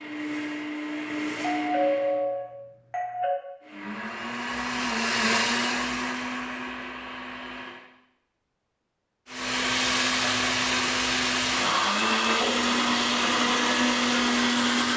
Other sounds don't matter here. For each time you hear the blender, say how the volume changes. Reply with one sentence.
The blender can be heard briefly from 0.0 to 2.2 s; from 3.6 to 7.8 s, getting louder then quieter; and from 9.2 to 14.9 s, at a steady volume.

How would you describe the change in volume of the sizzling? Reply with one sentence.
The volume of the sizzling stays about the same.